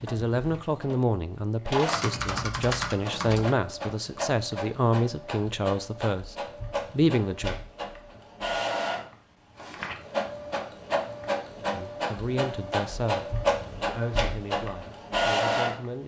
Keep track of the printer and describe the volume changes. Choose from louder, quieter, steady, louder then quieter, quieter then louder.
louder.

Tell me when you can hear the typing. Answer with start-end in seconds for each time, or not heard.
1.9-3.5.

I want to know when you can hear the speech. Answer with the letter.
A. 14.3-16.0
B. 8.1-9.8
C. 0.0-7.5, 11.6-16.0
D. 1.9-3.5
C.